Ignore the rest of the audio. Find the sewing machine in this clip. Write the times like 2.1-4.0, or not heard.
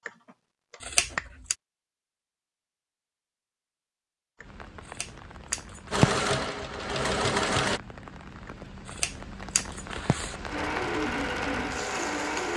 5.9-7.8, 10.2-12.5.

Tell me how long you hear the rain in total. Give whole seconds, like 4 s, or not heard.
8 s.